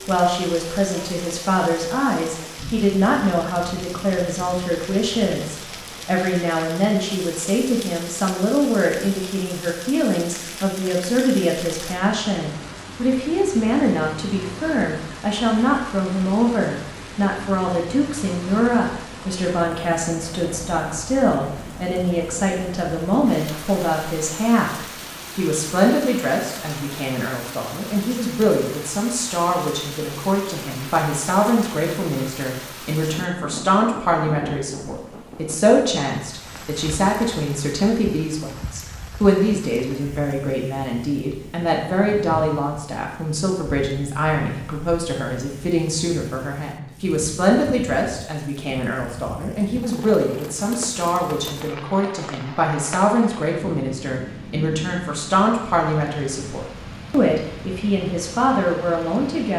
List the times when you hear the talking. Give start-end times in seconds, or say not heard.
0.1-59.5.